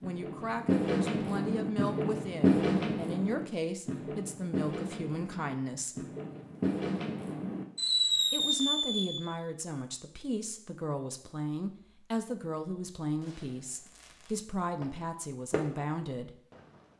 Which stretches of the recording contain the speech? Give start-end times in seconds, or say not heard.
0.0-6.0, 8.3-16.4.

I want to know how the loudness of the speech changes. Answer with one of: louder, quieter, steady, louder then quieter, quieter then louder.
steady.